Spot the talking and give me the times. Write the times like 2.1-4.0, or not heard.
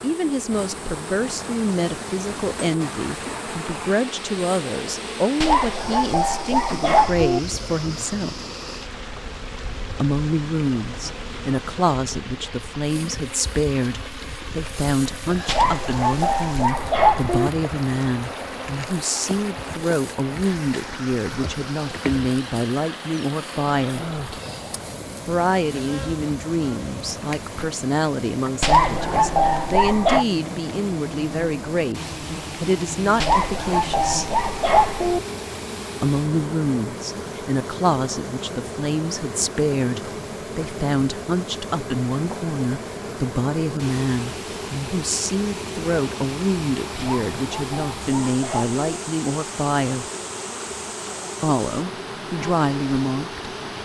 0.0-8.3, 10.0-24.1, 25.2-34.4, 36.0-50.0, 51.4-53.5.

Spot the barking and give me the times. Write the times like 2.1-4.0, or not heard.
5.4-7.4, 15.4-17.5, 28.6-30.2, 33.2-35.2, 47.0-48.8.